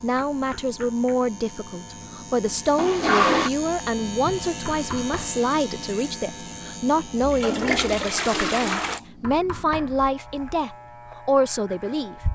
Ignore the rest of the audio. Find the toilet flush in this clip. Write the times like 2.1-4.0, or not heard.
2.8-3.5, 7.2-9.0.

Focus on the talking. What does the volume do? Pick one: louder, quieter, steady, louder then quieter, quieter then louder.
steady.